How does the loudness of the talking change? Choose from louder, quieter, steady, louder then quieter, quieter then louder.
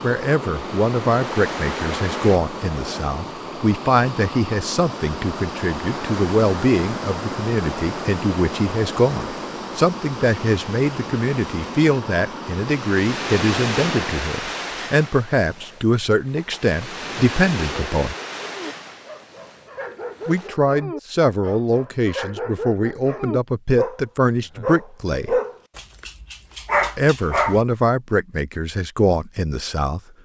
steady.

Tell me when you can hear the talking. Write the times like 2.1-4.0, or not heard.
0.0-18.1, 20.2-25.4, 26.9-30.0.